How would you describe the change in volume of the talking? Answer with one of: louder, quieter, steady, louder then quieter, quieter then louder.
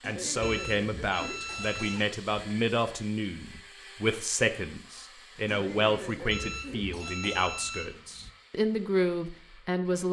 steady.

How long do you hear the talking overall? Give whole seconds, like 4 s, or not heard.
10 s.